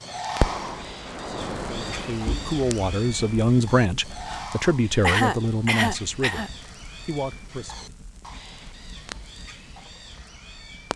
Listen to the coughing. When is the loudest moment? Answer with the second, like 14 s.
5 s.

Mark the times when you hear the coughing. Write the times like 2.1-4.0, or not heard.
5.0-6.5.